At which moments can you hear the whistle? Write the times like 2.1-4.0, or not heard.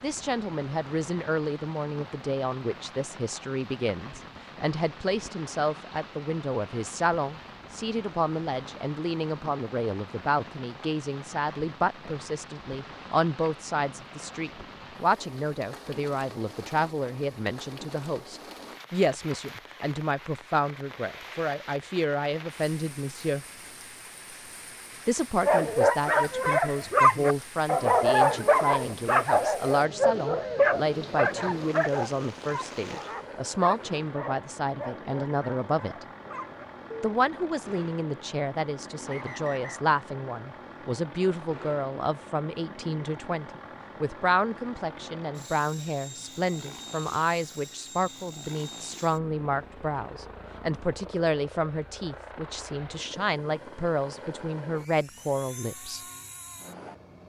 39.0-39.9.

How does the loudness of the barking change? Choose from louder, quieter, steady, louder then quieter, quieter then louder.
quieter.